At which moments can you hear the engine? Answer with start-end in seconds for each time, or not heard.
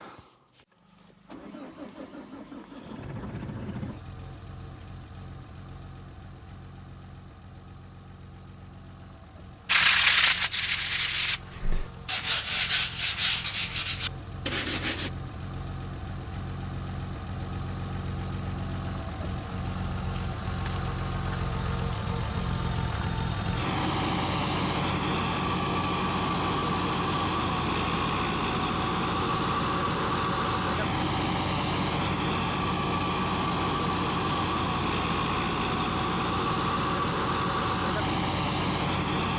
0.0-39.3.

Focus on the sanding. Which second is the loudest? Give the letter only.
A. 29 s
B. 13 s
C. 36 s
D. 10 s
D.